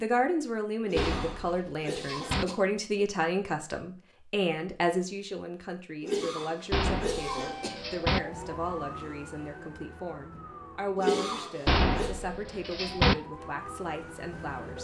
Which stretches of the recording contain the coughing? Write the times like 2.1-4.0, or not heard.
0.8-2.5, 6.0-7.7, 10.9-12.2.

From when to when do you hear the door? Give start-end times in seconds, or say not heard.
0.9-2.5, 6.7-8.2, 11.7-13.2.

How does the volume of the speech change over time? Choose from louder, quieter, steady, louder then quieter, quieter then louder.
quieter.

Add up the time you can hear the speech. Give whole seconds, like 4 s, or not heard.
15 s.